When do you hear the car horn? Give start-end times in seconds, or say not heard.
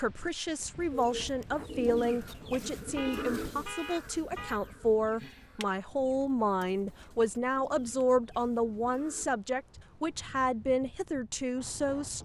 2.8-4.6.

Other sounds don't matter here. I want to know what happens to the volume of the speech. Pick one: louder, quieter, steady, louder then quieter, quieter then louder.
steady.